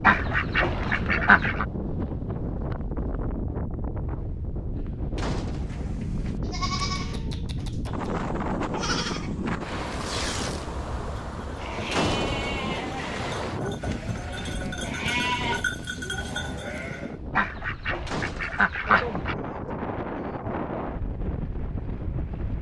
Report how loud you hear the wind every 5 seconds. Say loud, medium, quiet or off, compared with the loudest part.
loud, loud, loud, medium, loud.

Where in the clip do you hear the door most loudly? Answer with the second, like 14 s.
12 s.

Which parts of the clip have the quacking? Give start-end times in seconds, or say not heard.
0.0-1.6, 17.4-19.4.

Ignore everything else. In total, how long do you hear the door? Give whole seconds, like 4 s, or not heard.
2 s.